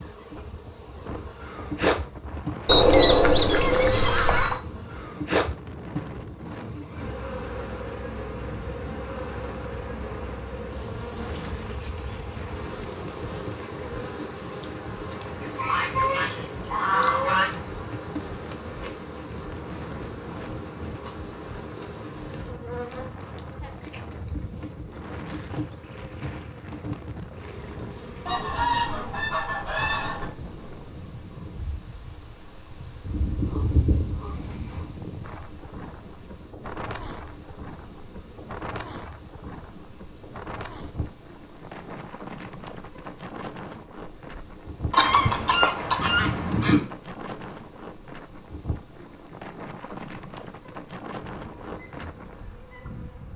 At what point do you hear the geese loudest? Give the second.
3 s.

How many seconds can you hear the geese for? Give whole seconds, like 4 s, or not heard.
10 s.